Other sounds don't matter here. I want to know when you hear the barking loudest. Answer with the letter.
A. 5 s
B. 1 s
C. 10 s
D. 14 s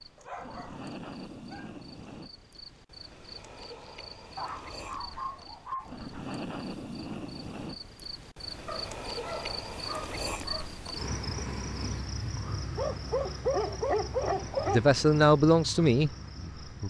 D.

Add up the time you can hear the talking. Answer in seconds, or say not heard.
2 s.